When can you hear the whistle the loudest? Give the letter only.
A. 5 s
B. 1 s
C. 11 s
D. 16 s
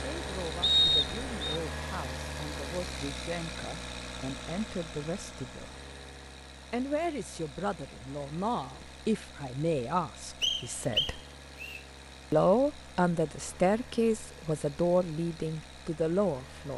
B.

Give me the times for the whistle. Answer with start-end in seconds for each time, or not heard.
0.6-1.6, 10.4-11.8.